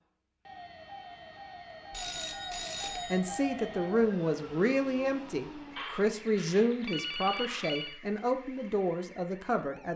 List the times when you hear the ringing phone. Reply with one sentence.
You can hear the ringing phone from 1.9 to 3.2 s and from 5.8 to 8.0 s.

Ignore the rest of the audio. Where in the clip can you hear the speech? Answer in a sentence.
The speech can be heard from 3.1 to 9.9 s.